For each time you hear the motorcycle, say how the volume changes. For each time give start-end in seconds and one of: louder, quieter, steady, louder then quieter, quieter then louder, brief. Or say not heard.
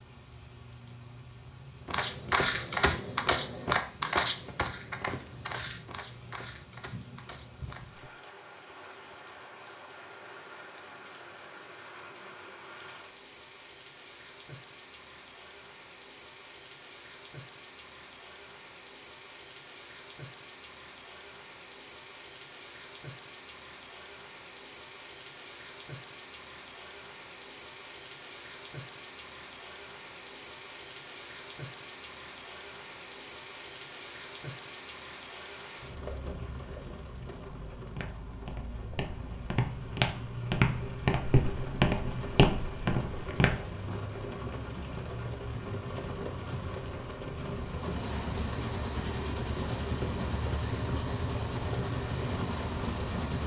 47.6-53.4 steady.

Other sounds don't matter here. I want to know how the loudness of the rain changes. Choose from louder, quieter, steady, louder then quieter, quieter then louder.
louder.